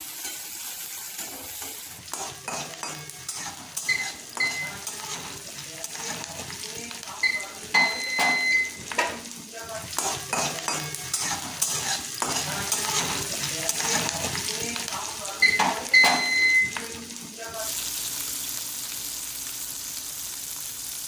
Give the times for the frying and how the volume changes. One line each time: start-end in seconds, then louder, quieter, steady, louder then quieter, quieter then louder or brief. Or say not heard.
0.0-21.0 louder then quieter.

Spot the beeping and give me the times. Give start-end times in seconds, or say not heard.
3.9-4.6, 7.2-9.1, 15.4-16.6.